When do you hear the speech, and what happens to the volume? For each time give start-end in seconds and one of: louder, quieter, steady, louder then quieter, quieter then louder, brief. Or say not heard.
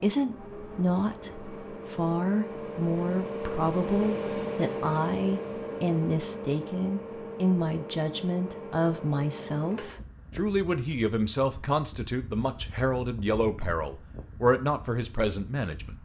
0.0-15.9 steady.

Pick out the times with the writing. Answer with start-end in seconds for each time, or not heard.
not heard.